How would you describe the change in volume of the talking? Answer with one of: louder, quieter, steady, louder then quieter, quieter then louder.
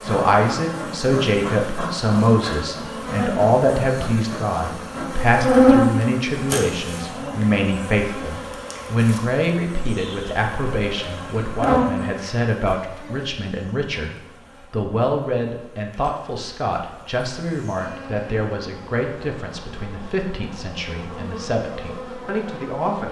quieter.